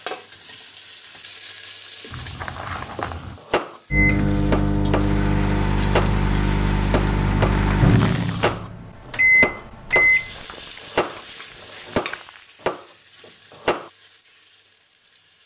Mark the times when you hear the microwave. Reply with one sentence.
The microwave can be heard from 3.9 to 10.3 s.